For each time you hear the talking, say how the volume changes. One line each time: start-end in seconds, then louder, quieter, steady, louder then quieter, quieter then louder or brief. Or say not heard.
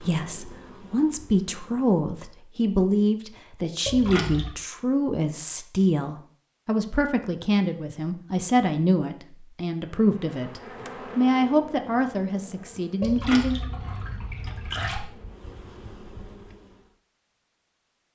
0.0-13.6 steady.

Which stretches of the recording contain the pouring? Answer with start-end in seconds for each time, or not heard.
3.9-4.5, 13.0-15.1.